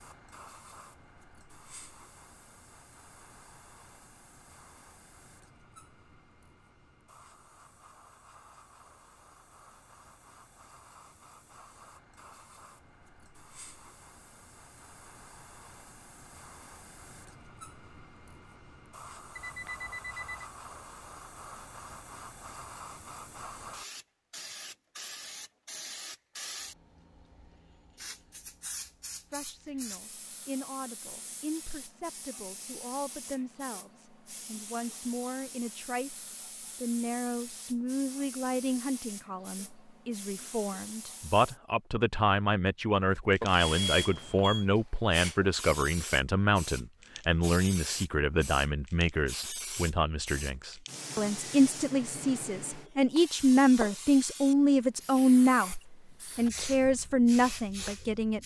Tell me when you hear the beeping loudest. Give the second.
44 s.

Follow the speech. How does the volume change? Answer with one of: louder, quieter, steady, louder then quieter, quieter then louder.
louder.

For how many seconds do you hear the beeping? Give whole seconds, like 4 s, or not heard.
2 s.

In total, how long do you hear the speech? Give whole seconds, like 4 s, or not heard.
29 s.